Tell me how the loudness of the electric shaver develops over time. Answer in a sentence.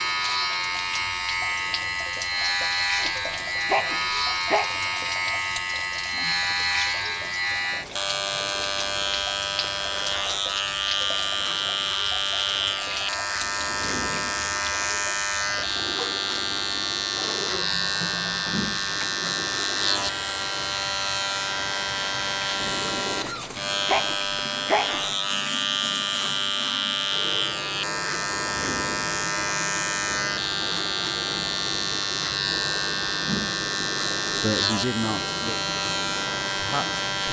The loudness of the electric shaver stays about the same.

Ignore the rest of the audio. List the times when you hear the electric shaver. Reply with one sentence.
The electric shaver can be heard from 0.0 to 37.2 s.